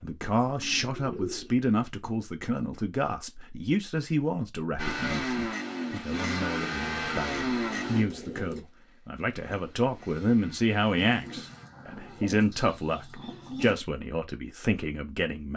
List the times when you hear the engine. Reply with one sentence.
You can hear the engine from 4.8 to 11.7 s.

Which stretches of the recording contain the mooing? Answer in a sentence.
The mooing can't be heard in this clip.